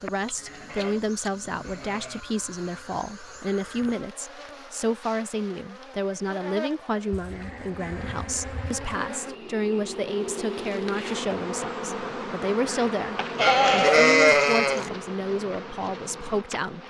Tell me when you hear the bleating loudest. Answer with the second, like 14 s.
14 s.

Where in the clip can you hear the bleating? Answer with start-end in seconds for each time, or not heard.
0.2-2.2, 7.1-9.0, 13.3-14.8.